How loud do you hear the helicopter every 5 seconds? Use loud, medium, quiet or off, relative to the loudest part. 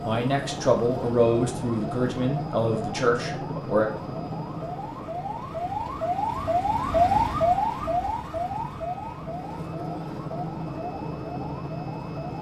loud, medium, loud.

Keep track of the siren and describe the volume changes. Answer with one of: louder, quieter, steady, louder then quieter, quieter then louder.
louder then quieter.